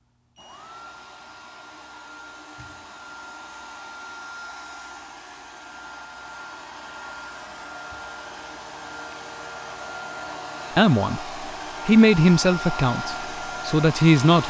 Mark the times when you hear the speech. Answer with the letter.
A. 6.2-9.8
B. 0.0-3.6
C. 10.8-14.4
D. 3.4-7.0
C.